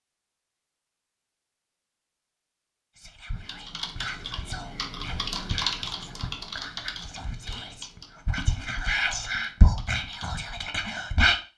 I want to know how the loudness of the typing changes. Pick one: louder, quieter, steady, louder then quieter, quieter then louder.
louder then quieter.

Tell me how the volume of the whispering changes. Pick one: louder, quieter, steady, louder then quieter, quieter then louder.
louder.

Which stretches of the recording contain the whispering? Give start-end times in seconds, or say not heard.
3.0-11.4.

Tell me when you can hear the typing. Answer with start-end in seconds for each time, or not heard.
3.3-10.4.